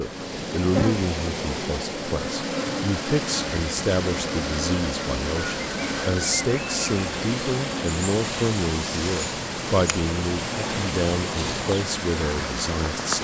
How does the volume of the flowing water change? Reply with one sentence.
The loudness of the flowing water stays about the same.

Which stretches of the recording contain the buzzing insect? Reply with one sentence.
The buzzing insect can be heard from 0.0 to 13.2 s.